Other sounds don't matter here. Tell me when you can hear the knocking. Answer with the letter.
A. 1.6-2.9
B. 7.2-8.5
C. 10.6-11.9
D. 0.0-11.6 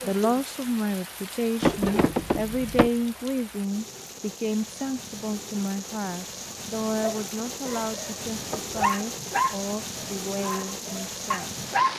A.